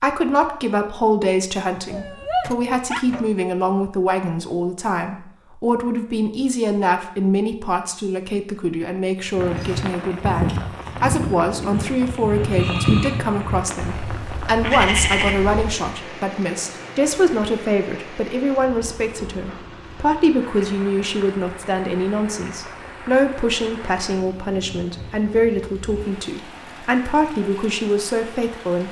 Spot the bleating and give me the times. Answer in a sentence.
The bleating can be heard from 9.2 to 15.9 s.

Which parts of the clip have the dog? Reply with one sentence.
The dog can be heard from 1.9 to 3.5 s.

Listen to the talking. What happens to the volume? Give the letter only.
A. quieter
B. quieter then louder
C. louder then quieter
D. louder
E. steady
E.